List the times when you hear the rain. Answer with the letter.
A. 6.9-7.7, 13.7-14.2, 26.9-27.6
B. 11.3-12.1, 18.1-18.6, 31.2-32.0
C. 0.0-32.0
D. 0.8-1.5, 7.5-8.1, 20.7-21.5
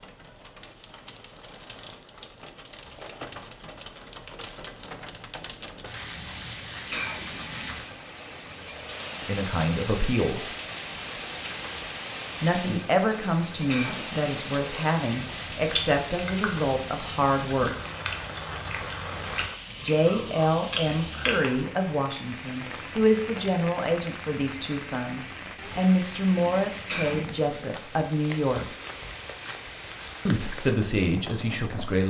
C.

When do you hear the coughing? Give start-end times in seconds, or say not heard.
6.9-7.7, 13.7-14.2, 26.9-27.6.